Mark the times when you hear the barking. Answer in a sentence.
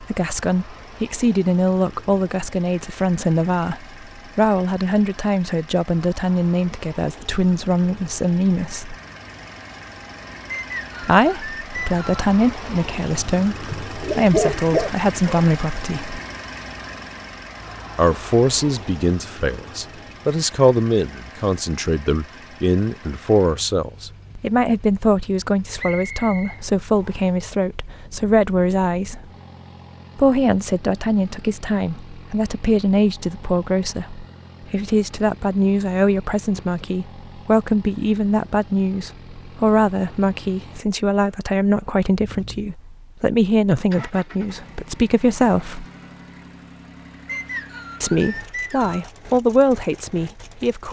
You can hear the barking from 13.7 to 15.5 s.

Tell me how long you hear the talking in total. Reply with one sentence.
The talking can be heard for 44 seconds in total.